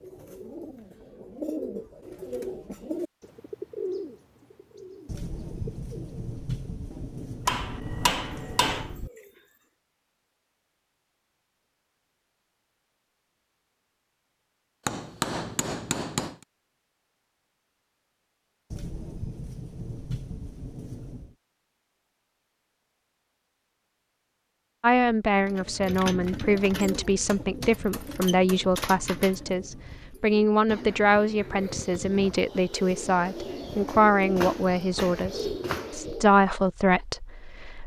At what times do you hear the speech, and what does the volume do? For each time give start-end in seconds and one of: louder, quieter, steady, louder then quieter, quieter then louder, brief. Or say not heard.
24.8-37.8 steady.